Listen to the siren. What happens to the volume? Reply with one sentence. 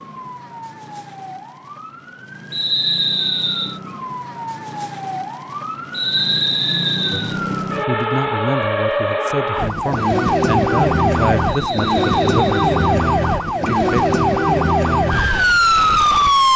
The volume of the siren goes up.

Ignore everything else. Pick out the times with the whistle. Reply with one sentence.
The whistle can be heard from 2.5 to 3.8 s, from 5.9 to 7.3 s and from 11.4 to 12.9 s.